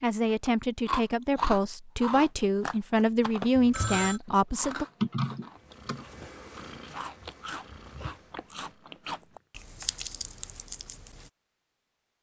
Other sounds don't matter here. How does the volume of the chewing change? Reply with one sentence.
The volume of the chewing goes down.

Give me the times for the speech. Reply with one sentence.
You can hear the speech from 0.0 to 4.8 s.